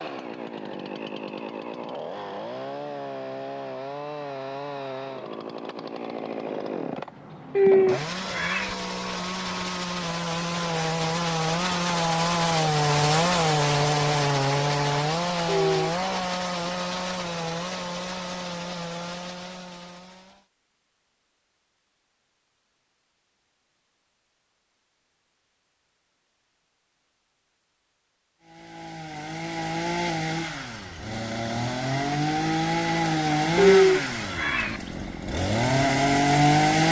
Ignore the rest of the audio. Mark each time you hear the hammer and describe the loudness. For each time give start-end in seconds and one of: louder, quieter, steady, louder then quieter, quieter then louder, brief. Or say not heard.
not heard.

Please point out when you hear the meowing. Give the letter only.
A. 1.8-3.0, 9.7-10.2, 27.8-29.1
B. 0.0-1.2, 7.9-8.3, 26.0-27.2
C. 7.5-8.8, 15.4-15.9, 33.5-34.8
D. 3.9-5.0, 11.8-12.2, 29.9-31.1
C.